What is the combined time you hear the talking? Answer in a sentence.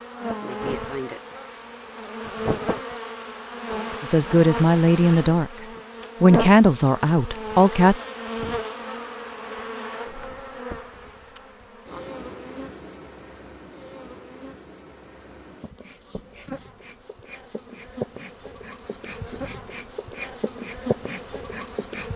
You can hear the talking for 3 seconds altogether.